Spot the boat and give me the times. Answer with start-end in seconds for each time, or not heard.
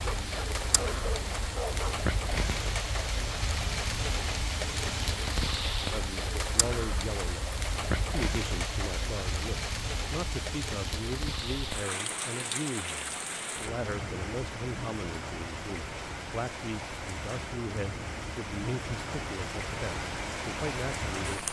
not heard.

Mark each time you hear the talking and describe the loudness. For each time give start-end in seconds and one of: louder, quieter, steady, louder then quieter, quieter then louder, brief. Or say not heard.
5.9-21.4 steady.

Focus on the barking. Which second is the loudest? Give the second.
2 s.